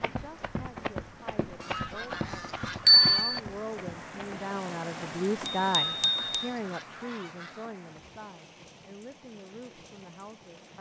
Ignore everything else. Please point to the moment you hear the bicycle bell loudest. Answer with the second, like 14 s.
3 s.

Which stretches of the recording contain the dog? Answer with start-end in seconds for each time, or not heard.
not heard.